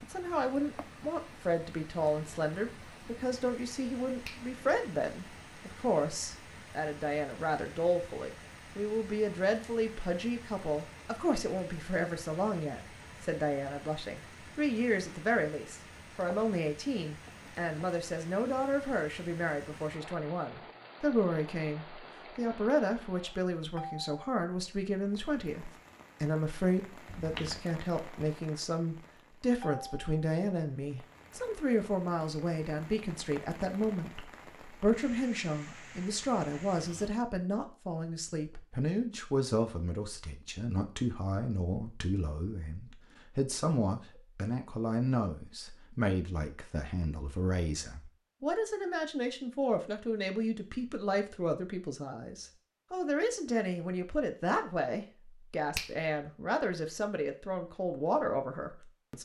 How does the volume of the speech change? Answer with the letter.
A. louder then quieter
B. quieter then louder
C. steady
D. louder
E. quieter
C.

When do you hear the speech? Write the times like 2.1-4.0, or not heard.
0.0-59.2.